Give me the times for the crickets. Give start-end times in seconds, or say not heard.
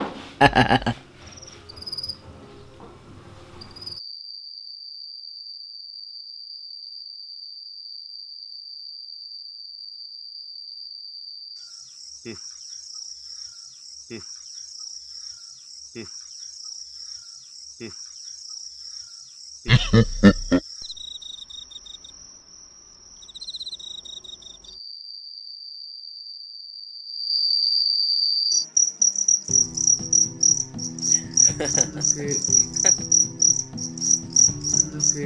0.0-35.2.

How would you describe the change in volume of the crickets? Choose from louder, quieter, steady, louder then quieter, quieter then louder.
louder.